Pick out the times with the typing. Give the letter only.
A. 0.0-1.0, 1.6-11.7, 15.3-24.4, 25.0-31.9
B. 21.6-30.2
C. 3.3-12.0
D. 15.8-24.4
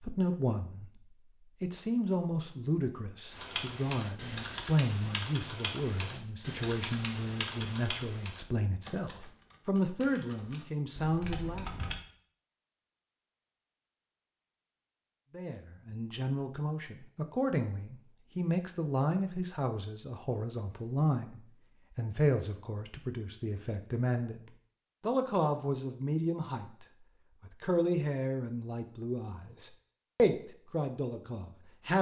C.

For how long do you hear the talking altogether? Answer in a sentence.
The talking can be heard for 27 seconds in total.